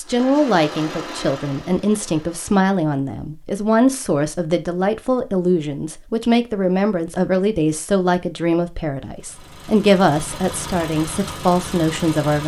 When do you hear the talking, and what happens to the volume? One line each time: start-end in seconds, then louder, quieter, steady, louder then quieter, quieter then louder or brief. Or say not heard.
0.0-12.4 steady.